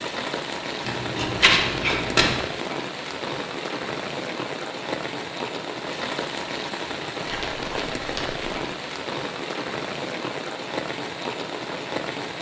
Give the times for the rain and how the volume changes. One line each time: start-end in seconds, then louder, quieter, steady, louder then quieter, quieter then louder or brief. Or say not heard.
0.0-12.3 steady.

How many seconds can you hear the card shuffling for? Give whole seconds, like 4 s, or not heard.
3 s.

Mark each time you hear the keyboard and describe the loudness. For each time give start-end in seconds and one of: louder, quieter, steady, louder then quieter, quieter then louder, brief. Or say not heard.
not heard.